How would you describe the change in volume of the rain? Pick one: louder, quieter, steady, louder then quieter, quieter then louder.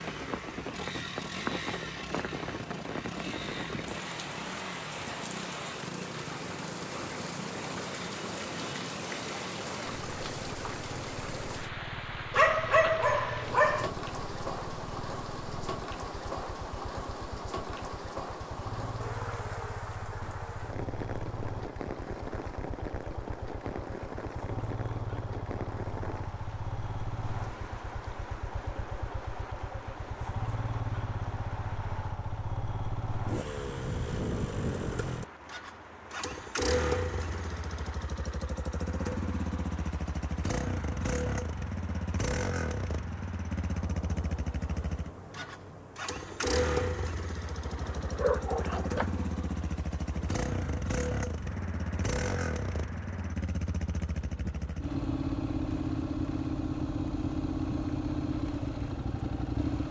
quieter.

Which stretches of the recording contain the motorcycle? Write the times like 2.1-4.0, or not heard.
0.0-59.8.